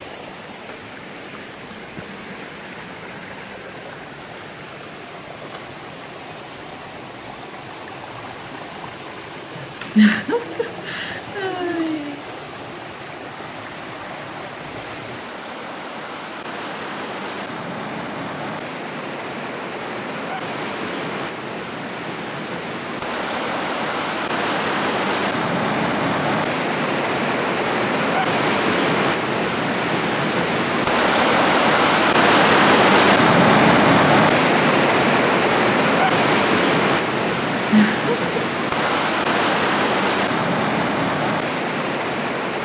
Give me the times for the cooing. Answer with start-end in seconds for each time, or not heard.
not heard.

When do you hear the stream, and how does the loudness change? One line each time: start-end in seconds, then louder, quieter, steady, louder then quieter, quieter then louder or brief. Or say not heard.
0.0-42.5 louder.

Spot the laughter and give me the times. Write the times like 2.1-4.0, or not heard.
9.6-12.2, 37.5-38.3.